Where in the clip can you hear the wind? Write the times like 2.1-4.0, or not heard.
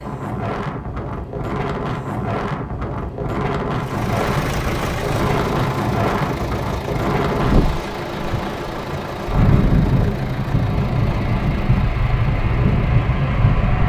0.0-13.8.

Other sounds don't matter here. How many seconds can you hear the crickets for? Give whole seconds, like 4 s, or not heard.
not heard.